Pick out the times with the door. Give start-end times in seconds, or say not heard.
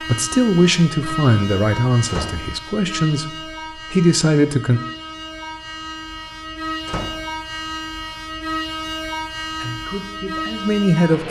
2.0-2.5, 6.8-7.3.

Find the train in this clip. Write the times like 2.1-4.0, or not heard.
0.0-11.2.